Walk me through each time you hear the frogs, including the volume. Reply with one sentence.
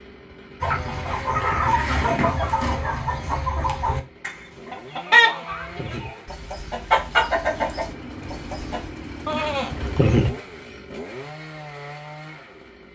You can't hear the frogs here.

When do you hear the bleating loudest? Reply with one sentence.
The loudest moment of the bleating is at 10 seconds.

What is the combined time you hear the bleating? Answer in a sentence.
The bleating can be heard for 3 seconds in total.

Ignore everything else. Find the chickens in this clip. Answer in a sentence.
You can hear the chickens from 0.6 to 8.9 s.